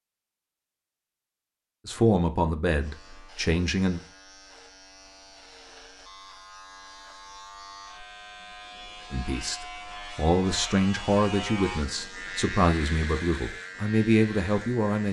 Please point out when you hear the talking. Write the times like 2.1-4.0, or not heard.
1.9-4.0, 9.1-15.0.